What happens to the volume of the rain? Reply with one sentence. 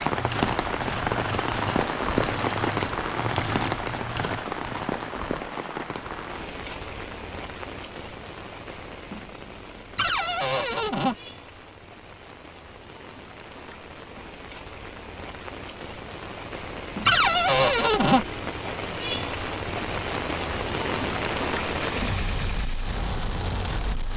The volume of the rain goes down, then up.